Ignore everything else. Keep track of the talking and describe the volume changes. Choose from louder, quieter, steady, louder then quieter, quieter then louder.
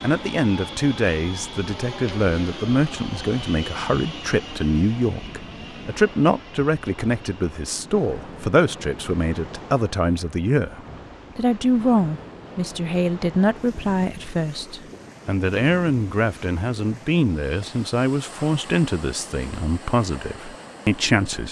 steady.